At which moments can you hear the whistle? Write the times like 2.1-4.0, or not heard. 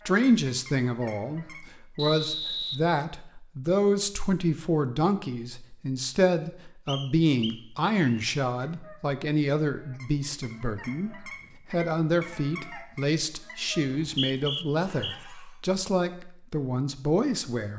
1.9-2.8, 6.8-8.2, 13.8-15.2.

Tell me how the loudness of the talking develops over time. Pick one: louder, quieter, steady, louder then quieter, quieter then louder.
steady.